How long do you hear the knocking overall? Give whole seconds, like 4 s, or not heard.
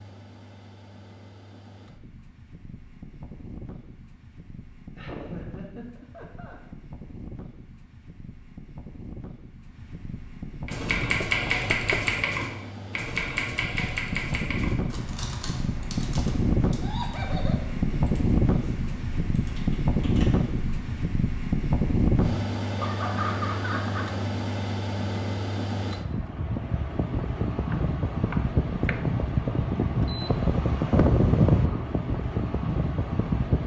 2 s.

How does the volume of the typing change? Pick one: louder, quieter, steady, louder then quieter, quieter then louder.
quieter.